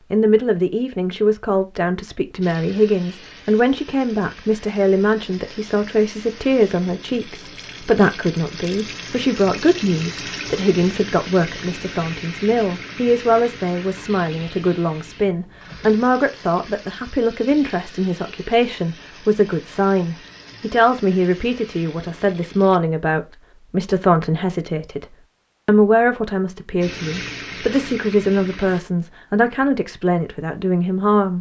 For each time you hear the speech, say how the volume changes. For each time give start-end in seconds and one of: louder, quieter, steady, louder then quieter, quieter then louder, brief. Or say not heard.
0.1-31.3 steady.